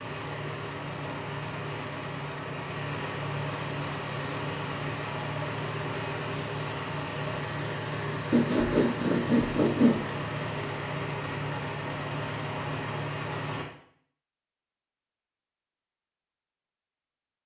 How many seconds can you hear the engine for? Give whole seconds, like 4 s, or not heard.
14 s.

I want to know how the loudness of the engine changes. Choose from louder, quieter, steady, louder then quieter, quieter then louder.
steady.